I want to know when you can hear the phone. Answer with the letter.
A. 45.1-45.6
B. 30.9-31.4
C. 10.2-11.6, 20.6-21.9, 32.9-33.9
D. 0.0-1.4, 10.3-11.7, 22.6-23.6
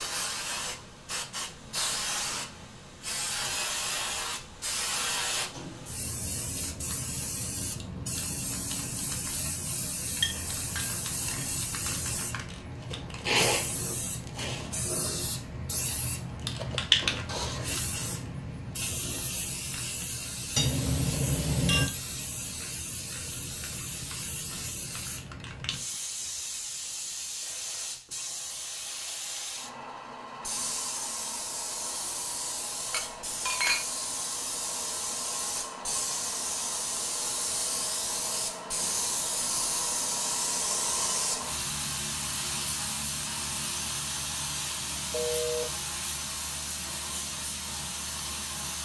A.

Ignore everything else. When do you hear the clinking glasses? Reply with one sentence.
The clinking glasses can be heard from 10.2 to 11.6 s, from 20.6 to 21.9 s and from 32.9 to 33.9 s.